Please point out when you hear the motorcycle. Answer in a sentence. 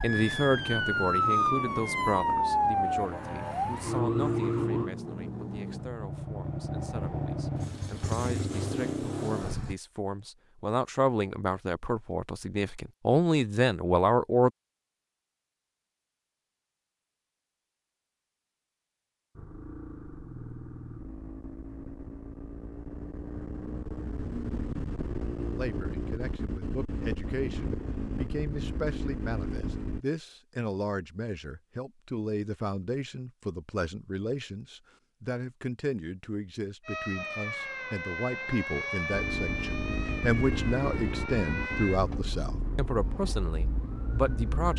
You can hear the motorcycle from 0.1 to 9.8 s, from 19.4 to 30.1 s and from 39.1 to 44.7 s.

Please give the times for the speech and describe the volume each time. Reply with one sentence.
You can hear the speech from 0.0 to 14.5 s, getting quieter then louder; and from 25.6 to 44.7 s, getting louder.